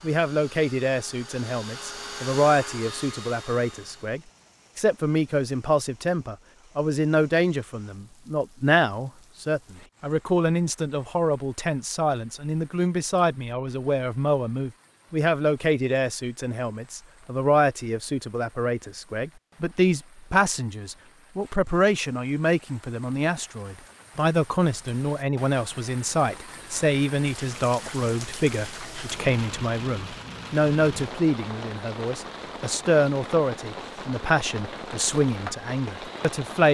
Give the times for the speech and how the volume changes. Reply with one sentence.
You can hear the speech from 0.0 to 36.6 s, at a steady volume.